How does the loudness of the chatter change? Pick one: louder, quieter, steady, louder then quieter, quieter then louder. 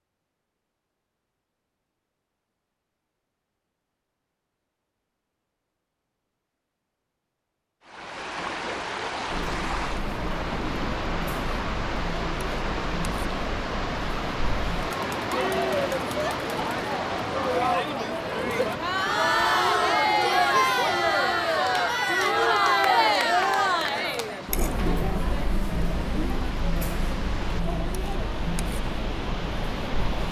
louder then quieter.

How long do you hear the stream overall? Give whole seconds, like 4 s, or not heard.
22 s.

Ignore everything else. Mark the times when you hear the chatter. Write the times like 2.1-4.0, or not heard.
9.2-30.2.